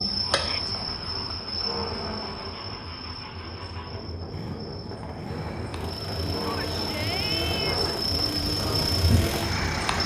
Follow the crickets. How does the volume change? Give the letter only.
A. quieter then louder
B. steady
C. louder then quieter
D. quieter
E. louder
A.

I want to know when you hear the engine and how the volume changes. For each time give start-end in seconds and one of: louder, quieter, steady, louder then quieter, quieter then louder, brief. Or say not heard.
0.0-10.0 louder.